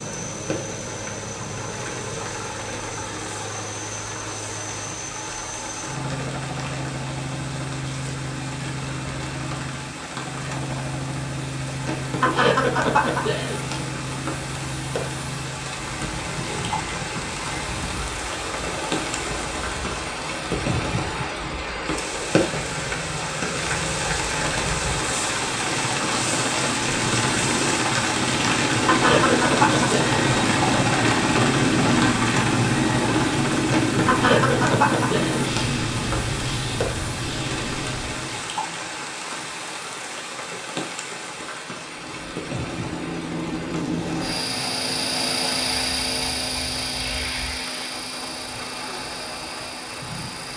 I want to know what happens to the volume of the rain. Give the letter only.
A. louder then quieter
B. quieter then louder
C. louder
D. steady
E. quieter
A.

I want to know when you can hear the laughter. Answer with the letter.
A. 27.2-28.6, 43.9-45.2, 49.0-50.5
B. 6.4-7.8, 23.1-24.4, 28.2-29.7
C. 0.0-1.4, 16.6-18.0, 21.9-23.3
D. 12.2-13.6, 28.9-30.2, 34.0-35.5
D.